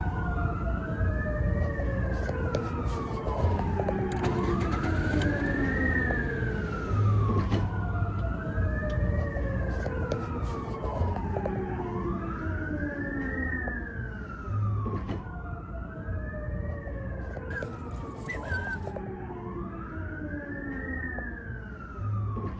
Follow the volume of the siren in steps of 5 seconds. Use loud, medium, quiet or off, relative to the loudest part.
loud, loud, loud, medium, medium.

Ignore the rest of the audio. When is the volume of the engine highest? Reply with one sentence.
The loudest moment of the engine is at 5 seconds.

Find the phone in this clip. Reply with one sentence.
The phone can't be heard in this clip.